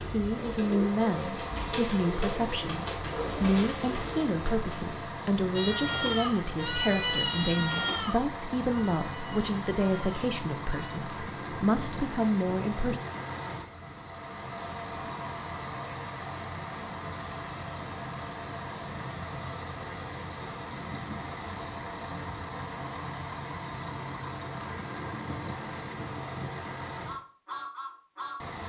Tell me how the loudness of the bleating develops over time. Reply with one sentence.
The volume of the bleating goes down.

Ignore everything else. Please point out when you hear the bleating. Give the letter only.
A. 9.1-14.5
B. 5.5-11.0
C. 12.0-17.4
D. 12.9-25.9
B.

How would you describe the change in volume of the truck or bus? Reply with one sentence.
The volume of the truck or bus stays about the same.